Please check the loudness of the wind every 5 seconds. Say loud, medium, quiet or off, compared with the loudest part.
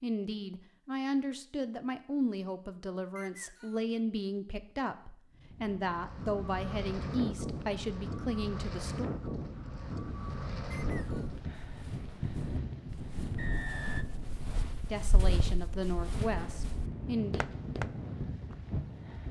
off, loud, loud, loud.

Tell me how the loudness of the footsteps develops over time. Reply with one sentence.
The loudness of the footsteps goes up.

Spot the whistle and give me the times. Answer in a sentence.
The whistle can be heard from 3.1 to 4.0 s, from 10.7 to 11.3 s and from 13.3 to 14.1 s.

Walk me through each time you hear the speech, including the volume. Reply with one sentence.
You can hear the speech from 0.0 to 9.2 s, at a steady volume; and briefly from 14.8 to 17.5 s.